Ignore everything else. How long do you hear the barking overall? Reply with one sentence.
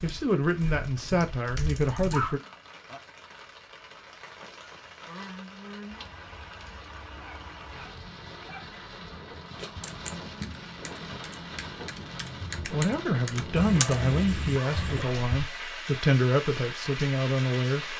The barking can be heard for 4 seconds in total.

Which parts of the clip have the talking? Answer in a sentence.
The talking can be heard from 0.0 to 2.4 s and from 12.7 to 17.9 s.